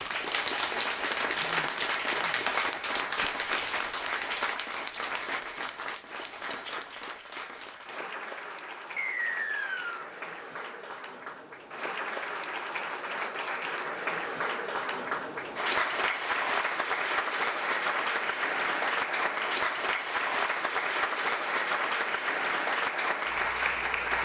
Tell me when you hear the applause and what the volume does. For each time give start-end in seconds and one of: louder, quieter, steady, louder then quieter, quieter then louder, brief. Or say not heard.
0.0-24.1 quieter then louder.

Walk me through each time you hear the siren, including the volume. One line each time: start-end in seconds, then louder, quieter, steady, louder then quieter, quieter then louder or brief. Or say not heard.
not heard.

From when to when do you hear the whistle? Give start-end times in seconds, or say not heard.
8.9-10.1.